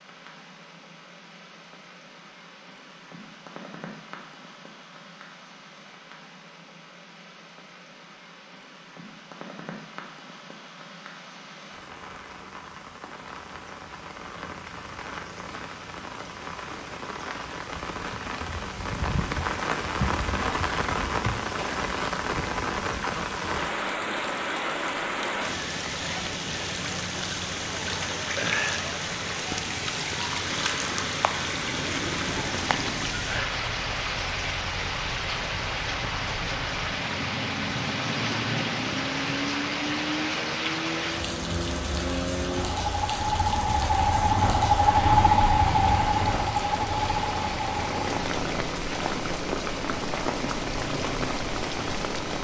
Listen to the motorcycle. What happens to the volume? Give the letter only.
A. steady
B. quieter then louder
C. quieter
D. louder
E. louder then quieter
E.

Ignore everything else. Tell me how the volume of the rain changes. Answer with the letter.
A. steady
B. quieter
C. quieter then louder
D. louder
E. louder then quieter
D.